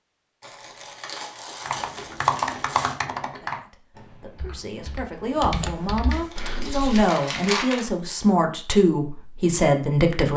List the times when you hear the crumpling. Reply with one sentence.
The crumpling can be heard from 0.4 to 3.0 s and from 6.1 to 7.8 s.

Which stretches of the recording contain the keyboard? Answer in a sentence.
The keyboard can be heard from 1.6 to 7.1 s.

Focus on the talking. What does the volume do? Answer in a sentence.
The volume of the talking goes up.